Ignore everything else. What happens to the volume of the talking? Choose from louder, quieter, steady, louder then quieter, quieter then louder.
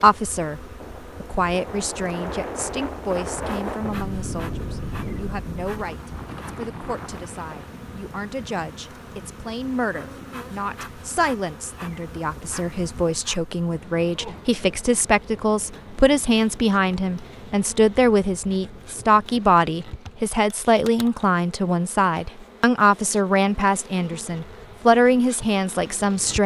louder.